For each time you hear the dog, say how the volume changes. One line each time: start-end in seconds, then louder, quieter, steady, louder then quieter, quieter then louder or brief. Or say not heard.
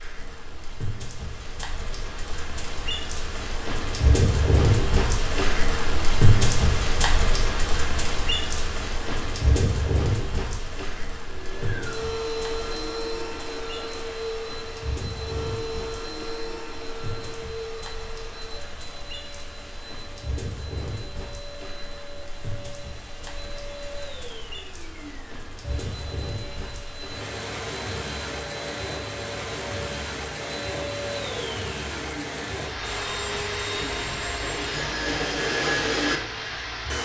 not heard.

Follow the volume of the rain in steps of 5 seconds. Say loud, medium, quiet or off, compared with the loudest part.
loud, loud, medium, quiet, quiet, medium, medium, medium.